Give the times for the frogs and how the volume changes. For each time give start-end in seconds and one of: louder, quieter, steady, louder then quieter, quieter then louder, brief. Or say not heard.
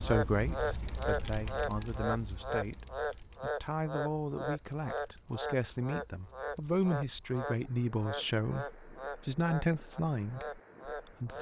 0.0-11.3 quieter.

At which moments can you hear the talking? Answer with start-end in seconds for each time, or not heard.
0.0-11.3.